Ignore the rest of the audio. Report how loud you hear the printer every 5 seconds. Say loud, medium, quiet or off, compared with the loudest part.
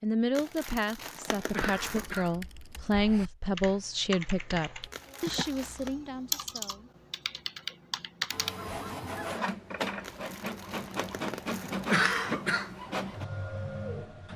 off, loud, loud.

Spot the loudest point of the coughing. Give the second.
12 s.